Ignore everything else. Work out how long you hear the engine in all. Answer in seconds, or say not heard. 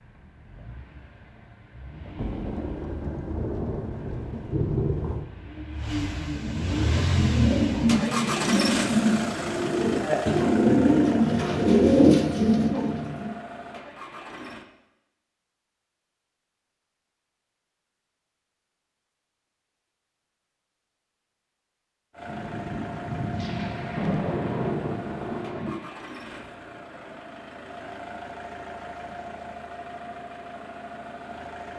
24 s.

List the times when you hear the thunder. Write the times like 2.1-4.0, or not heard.
2.1-5.2, 22.2-25.7.